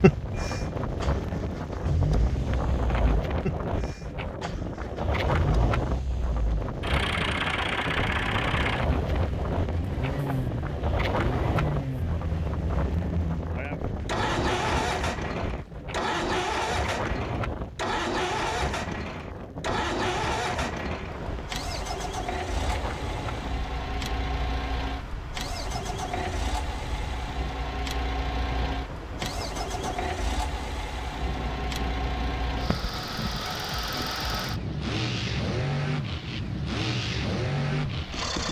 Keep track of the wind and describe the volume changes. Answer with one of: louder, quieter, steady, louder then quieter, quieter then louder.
quieter.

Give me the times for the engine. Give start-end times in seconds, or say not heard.
0.0-38.4.